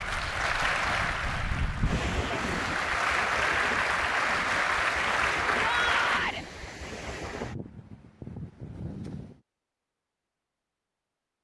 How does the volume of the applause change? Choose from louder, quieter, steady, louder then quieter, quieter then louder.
quieter then louder.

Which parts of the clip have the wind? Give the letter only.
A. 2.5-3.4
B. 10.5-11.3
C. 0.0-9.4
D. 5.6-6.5
C.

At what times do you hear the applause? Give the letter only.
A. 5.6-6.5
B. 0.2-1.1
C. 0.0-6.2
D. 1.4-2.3
C.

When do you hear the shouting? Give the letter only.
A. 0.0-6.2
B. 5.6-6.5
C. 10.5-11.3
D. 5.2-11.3
B.